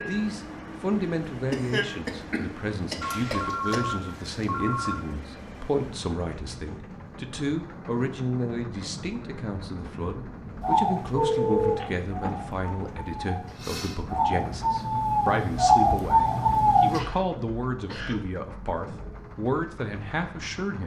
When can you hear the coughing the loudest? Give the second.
2 s.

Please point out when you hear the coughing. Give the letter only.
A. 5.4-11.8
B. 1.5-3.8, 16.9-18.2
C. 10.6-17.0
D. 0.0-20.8
B.